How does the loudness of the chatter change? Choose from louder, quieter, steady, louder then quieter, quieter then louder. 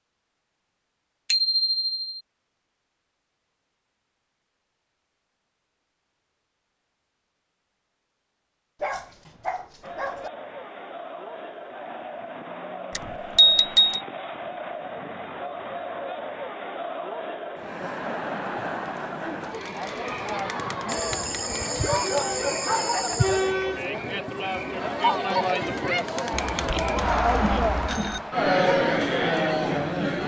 louder.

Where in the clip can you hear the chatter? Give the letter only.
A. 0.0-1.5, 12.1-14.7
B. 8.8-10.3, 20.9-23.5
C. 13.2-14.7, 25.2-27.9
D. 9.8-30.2
D.